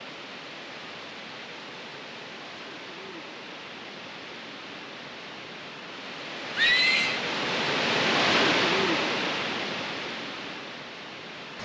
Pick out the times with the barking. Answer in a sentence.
You can't hear the barking here.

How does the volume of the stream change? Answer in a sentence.
The loudness of the stream goes up, then down.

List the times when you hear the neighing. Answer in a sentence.
The neighing can be heard from 6.5 to 7.2 s.